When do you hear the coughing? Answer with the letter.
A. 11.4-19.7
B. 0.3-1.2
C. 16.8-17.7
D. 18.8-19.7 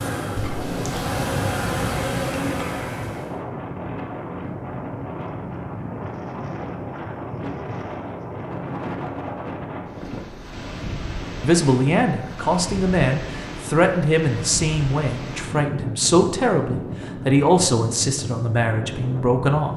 B.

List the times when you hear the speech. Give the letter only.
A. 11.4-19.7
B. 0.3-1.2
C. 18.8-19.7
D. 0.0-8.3
A.